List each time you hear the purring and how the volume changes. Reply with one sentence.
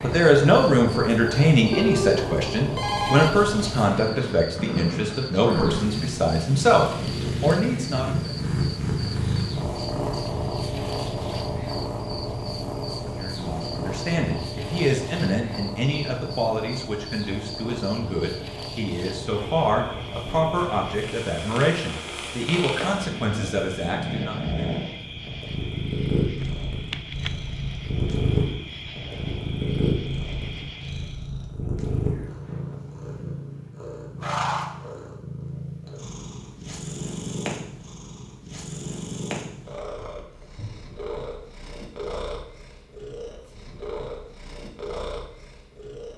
You can hear the purring from 0.0 to 46.1 s, getting quieter.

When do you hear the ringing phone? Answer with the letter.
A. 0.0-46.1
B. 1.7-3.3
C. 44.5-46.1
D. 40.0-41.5
B.